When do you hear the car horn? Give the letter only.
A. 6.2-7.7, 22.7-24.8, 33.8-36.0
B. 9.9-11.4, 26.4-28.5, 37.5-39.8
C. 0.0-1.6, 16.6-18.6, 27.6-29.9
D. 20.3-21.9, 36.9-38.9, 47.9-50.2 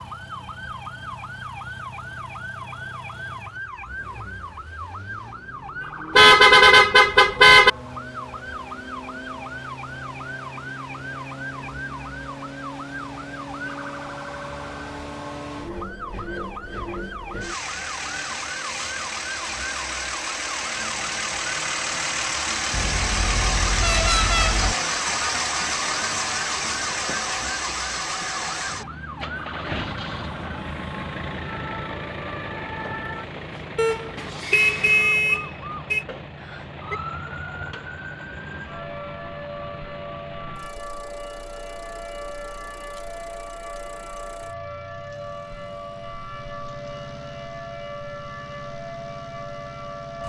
A.